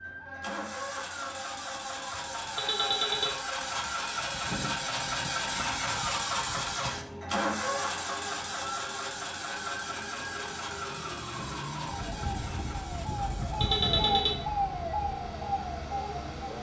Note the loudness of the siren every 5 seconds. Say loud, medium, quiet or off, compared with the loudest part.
medium, medium, loud, loud.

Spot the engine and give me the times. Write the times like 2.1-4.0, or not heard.
0.0-16.5.